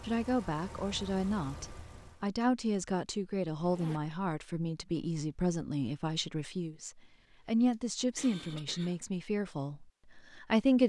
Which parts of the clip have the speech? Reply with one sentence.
You can hear the speech from 0.0 to 10.8 s.